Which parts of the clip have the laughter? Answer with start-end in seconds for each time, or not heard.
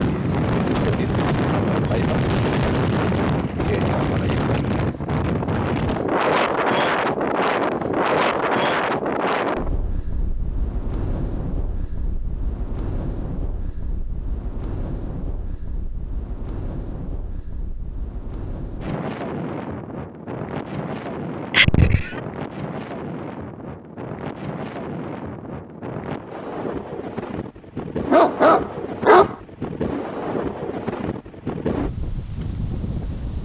21.5-22.2.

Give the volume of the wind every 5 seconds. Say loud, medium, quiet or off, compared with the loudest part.
loud, loud, quiet, quiet, medium, medium, medium.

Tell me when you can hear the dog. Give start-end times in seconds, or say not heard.
28.1-29.4.